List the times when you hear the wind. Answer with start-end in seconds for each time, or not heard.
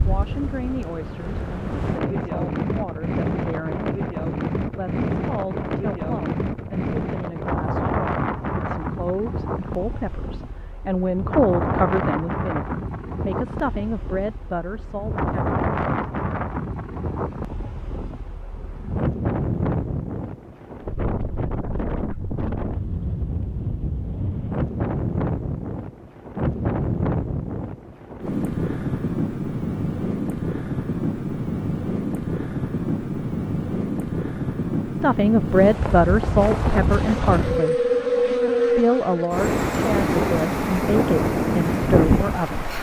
0.0-42.7.